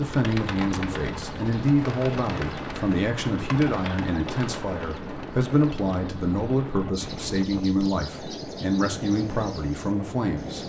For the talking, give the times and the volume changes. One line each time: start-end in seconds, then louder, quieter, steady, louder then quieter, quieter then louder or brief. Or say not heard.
0.0-10.6 steady.